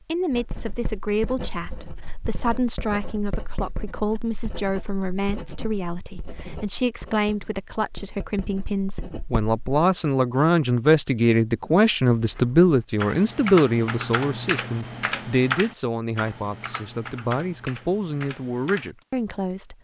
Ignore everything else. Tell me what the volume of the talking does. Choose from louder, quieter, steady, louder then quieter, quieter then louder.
louder then quieter.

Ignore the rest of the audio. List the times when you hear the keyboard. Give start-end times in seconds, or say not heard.
12.1-19.1.